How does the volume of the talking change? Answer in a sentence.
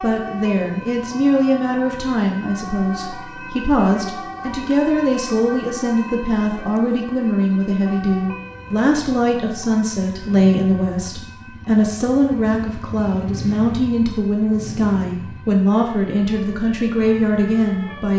The loudness of the talking stays about the same.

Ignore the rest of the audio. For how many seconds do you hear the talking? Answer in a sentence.
The talking can be heard for 18 seconds in total.